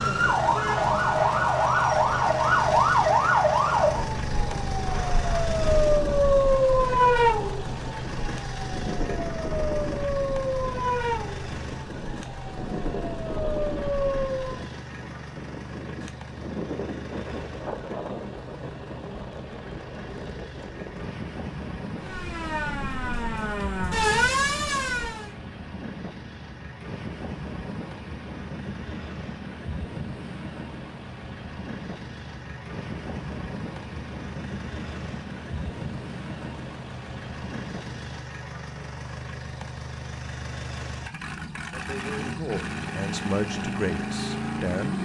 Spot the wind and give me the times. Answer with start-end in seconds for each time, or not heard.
0.0-38.2.